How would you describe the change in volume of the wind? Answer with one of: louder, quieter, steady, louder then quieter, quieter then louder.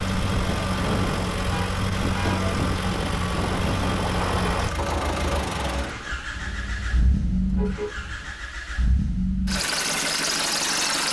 steady.